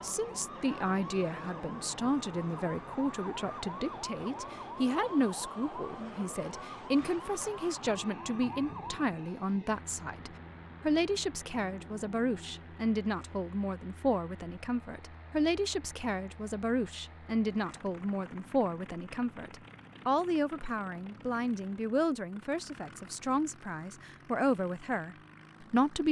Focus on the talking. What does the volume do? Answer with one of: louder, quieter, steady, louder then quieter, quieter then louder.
steady.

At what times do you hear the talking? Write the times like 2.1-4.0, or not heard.
0.0-26.0.